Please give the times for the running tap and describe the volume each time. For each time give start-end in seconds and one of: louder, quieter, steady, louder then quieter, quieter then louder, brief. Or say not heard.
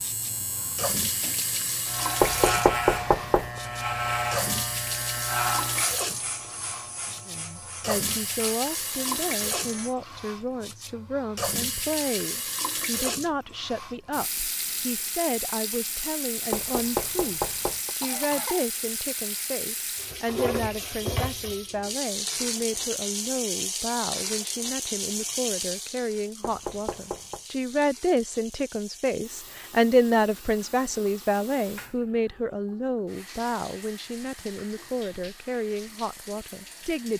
0.0-37.1 quieter.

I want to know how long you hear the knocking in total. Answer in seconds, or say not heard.
4 s.